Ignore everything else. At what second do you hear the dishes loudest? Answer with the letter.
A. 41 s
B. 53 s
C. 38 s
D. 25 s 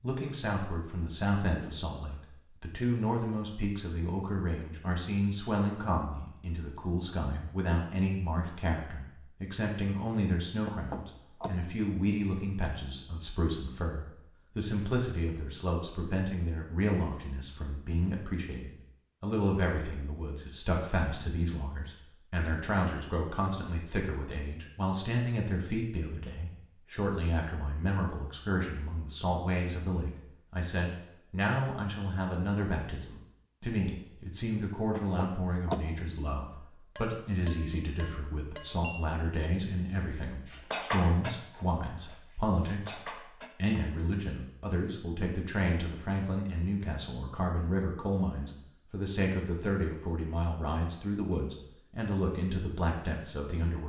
A.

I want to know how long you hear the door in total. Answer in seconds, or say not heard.
2 s.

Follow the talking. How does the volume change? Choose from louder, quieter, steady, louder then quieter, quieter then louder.
steady.